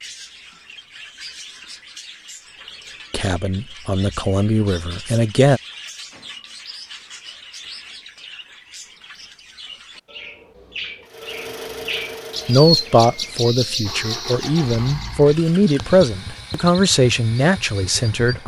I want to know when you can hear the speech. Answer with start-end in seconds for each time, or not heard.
3.1-5.6, 12.4-18.4.